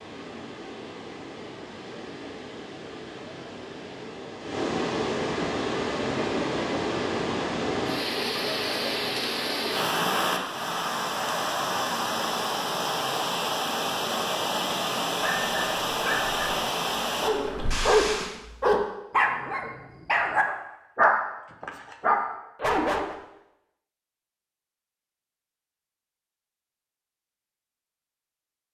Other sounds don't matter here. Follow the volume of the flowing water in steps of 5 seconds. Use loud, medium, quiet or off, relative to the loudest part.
medium, loud, loud, loud, off, off.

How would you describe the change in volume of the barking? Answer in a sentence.
The volume of the barking goes up.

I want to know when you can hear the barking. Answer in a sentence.
You can hear the barking from 15.2 to 23.1 s.